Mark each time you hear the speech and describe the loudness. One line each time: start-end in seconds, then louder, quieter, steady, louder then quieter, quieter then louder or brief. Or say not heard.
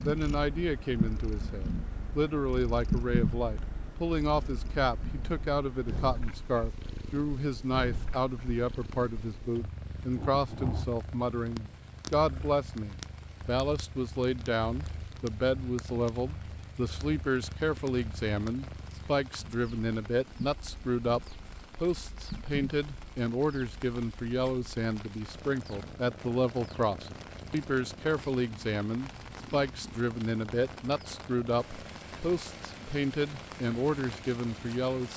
0.0-35.1 steady.